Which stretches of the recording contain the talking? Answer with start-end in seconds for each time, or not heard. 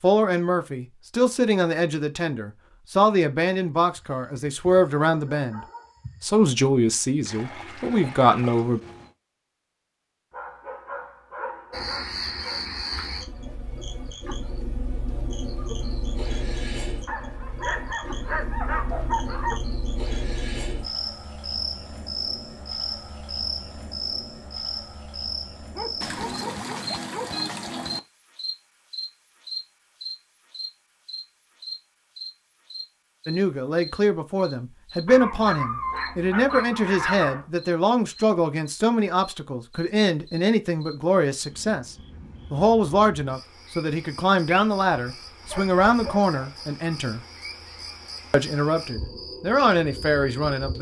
0.0-5.6, 6.2-8.8, 33.2-47.2, 48.3-50.7.